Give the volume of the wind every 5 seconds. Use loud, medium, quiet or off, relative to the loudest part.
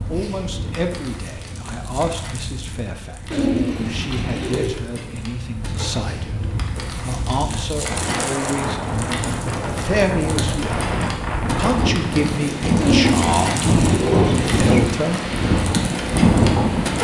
quiet, medium, loud, loud.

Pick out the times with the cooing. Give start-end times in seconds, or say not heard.
3.3-4.8, 12.8-14.8.